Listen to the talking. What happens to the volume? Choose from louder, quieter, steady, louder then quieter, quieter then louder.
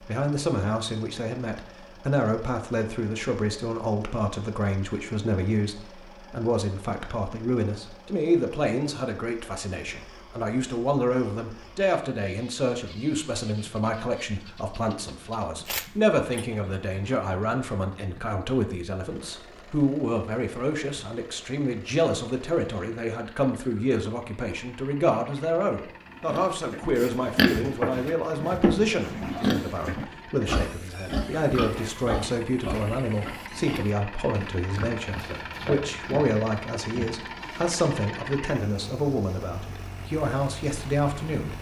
steady.